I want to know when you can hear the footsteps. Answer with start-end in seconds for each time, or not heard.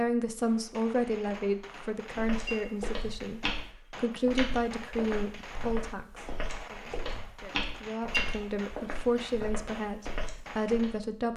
2.1-11.0.